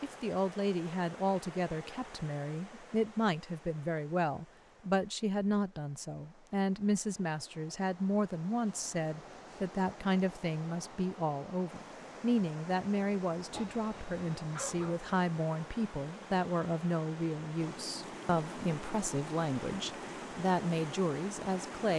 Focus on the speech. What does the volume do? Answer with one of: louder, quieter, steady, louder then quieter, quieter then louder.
steady.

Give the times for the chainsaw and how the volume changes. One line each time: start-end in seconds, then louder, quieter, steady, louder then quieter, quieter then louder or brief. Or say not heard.
not heard.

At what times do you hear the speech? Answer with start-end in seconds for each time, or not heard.
0.0-21.9.